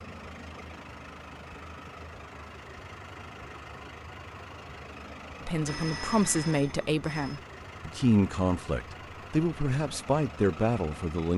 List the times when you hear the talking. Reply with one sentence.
You can hear the talking from 5.5 to 11.3 s.